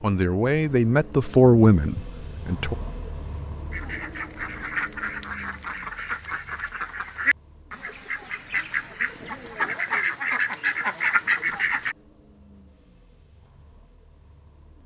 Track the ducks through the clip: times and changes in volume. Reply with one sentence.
You can hear the ducks from 3.7 to 11.9 s, getting louder.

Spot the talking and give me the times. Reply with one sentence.
You can hear the talking from 0.0 to 2.8 s.